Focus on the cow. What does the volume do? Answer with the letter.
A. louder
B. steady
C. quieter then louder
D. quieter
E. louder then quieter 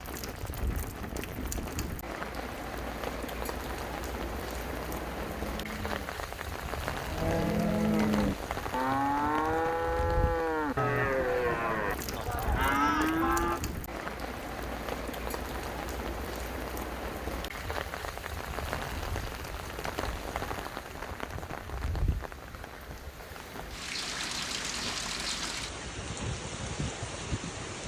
A.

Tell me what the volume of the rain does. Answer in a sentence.
The loudness of the rain stays about the same.